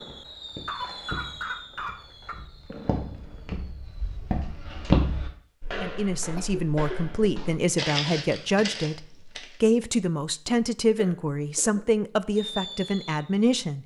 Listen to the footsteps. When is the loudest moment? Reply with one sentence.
The loudest moment of the footsteps is at 5 seconds.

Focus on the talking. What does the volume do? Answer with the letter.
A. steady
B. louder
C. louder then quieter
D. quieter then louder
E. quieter
A.